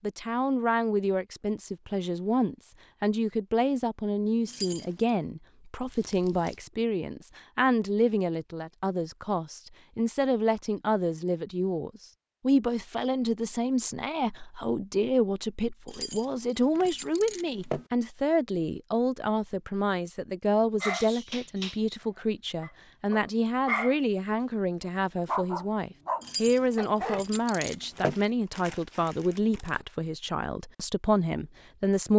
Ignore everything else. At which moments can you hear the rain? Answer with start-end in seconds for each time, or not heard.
not heard.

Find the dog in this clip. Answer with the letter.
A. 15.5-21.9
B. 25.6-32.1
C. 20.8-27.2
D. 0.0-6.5
C.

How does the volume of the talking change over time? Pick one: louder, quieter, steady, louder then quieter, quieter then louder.
steady.